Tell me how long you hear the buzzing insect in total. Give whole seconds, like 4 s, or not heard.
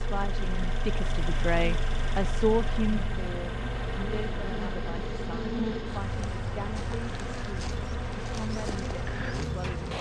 10 s.